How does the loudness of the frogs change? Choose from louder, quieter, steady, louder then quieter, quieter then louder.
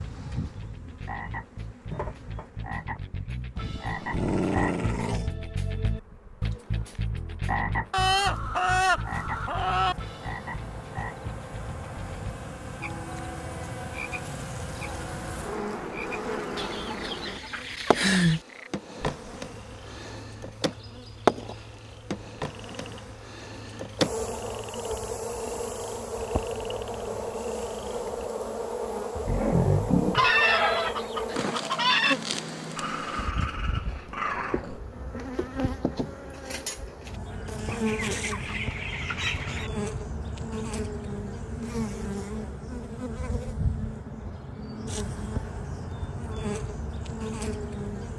quieter.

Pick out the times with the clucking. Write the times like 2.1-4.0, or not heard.
7.9-9.9, 16.6-18.4, 30.1-32.1, 37.6-39.7.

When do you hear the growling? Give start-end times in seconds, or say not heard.
3.5-5.3, 29.2-30.3, 32.8-34.8.